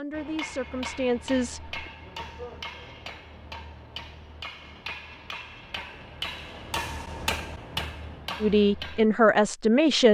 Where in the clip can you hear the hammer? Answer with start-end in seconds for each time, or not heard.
0.1-9.1.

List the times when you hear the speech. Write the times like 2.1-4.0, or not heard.
0.0-1.8, 8.4-10.0.